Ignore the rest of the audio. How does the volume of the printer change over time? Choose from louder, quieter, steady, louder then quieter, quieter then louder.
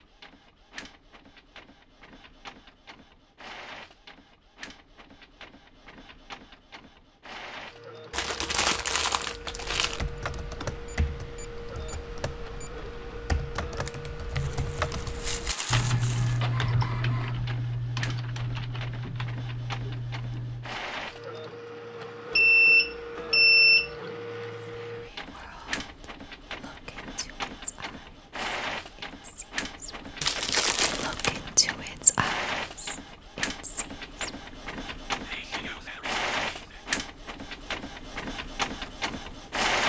louder.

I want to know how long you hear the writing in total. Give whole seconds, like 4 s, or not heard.
not heard.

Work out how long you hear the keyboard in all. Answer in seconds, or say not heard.
11 s.